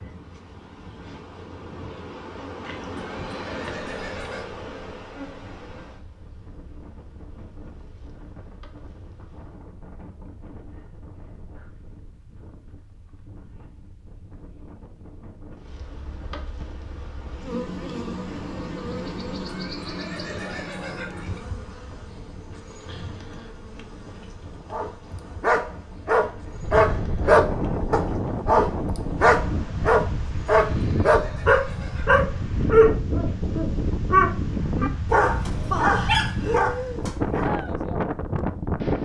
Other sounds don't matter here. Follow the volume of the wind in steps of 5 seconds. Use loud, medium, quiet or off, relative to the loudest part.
quiet, quiet, quiet, quiet, quiet, loud, loud, loud.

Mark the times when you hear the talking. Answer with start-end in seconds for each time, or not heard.
not heard.